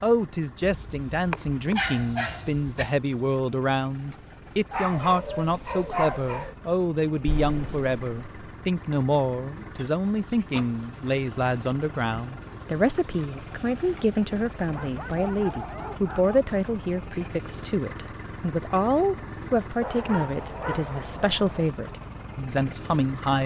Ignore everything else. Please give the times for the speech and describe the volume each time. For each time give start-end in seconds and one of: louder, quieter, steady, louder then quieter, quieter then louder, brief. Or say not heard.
0.0-23.4 steady.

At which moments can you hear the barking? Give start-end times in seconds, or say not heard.
0.6-3.0, 4.7-6.5, 9.8-11.7, 14.6-16.4, 19.8-21.7.